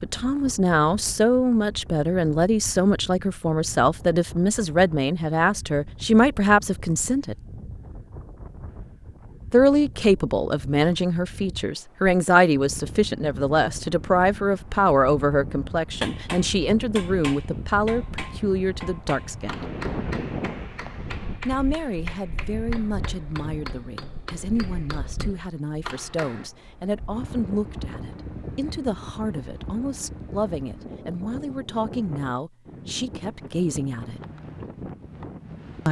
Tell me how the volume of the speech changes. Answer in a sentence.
The volume of the speech goes down.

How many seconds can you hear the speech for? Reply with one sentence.
The speech can be heard for 30 seconds in total.